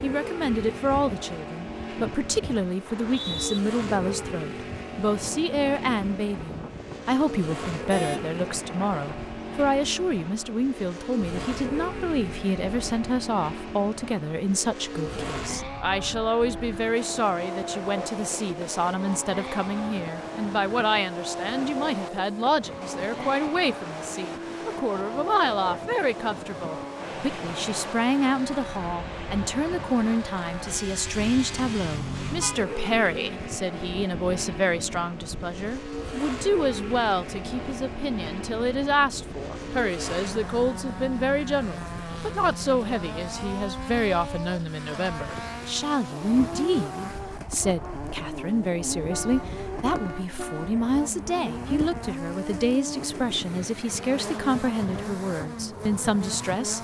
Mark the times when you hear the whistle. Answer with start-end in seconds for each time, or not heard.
2.9-3.6.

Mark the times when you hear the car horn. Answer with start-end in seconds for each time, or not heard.
7.8-8.3, 31.2-32.6, 49.0-50.8.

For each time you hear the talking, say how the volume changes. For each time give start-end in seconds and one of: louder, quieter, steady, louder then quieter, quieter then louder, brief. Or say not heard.
0.0-56.7 steady.